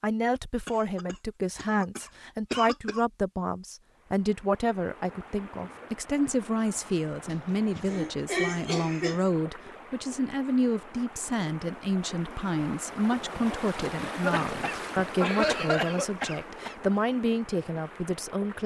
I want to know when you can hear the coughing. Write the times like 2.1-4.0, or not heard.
0.7-3.0, 7.3-9.2, 14.1-16.8.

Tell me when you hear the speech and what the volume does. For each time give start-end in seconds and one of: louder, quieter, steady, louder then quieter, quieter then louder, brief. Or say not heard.
0.0-18.6 steady.